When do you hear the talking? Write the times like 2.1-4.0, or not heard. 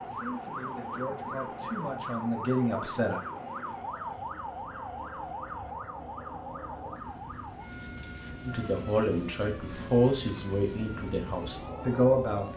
0.0-3.2, 8.4-12.5.